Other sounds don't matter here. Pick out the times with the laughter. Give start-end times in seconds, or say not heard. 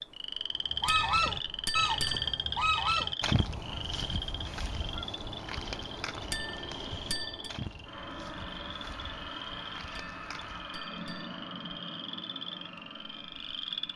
not heard.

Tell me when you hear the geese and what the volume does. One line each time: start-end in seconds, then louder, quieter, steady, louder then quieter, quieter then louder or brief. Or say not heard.
0.7-10.9 quieter.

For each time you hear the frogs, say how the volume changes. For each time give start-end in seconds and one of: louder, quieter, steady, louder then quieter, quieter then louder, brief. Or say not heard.
0.0-13.9 quieter.